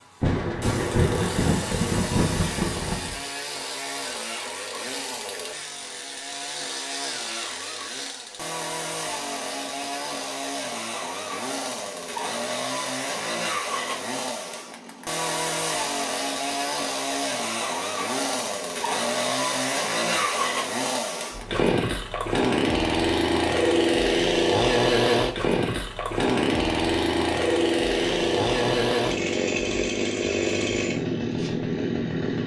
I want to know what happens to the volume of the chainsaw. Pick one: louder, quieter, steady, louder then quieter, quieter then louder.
louder.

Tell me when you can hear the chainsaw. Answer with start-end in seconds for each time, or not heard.
0.0-32.4.